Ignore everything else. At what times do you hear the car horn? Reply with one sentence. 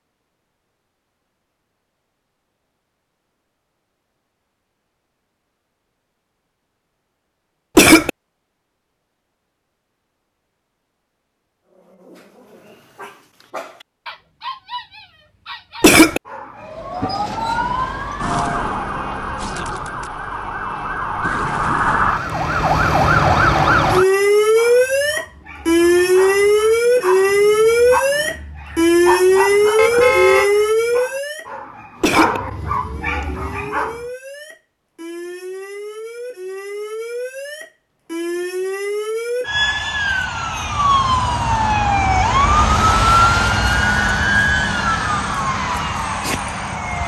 The car horn can be heard from 29.8 to 30.5 s.